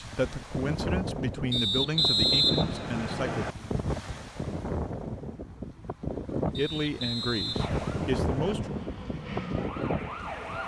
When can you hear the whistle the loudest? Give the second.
2 s.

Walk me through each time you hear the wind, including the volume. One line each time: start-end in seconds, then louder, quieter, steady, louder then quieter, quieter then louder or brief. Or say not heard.
0.0-10.6 steady.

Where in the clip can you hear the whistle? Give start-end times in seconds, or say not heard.
1.5-3.5, 6.5-8.6.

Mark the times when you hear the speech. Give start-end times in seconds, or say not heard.
0.0-3.5, 6.5-8.7.